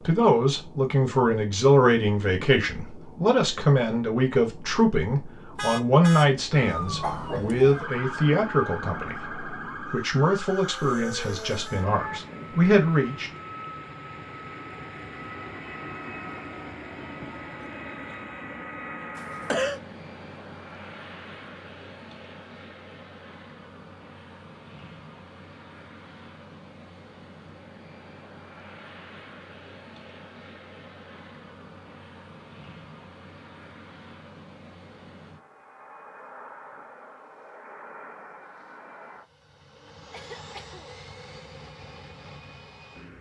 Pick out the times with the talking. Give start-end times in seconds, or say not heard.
0.1-13.3.